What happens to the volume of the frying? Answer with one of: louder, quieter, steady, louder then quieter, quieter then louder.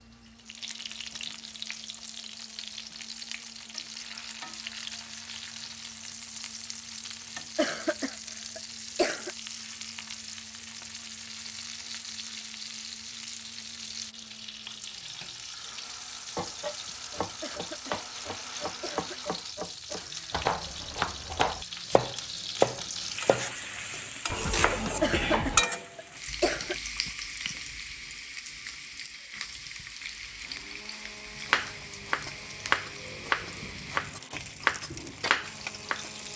louder then quieter.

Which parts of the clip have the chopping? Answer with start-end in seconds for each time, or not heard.
16.4-25.6, 31.4-36.3.